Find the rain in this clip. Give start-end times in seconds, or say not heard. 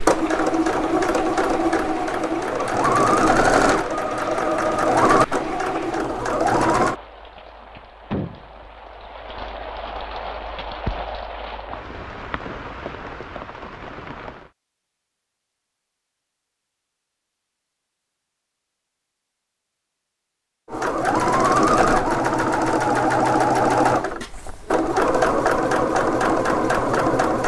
0.0-14.5.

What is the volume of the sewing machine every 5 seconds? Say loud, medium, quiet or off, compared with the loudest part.
loud, loud, off, off, loud, loud.